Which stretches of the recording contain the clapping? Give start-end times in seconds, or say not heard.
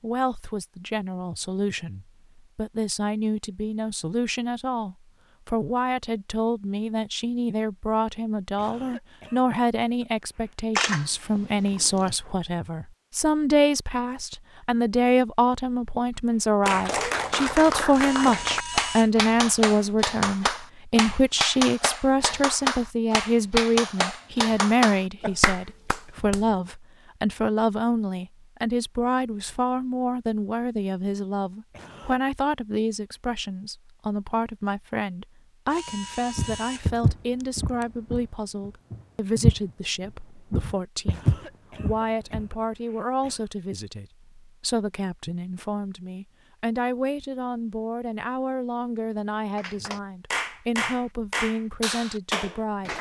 16.6-26.6, 49.5-52.9.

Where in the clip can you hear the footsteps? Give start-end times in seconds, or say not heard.
36.4-42.5.